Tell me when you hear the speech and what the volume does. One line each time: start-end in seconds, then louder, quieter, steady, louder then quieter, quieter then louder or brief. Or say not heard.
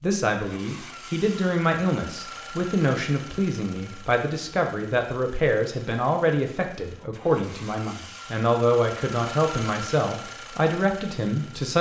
0.0-11.7 steady.